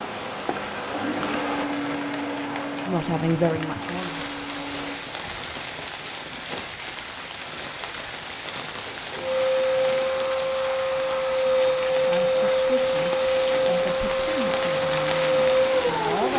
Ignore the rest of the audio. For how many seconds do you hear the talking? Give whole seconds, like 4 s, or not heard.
6 s.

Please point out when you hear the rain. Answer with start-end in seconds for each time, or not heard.
0.0-16.3.